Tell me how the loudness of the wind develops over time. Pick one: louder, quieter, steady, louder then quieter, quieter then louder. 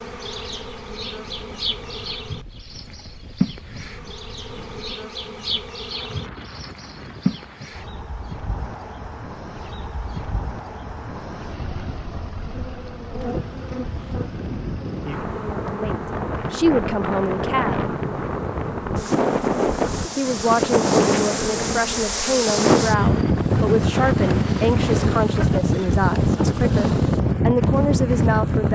louder.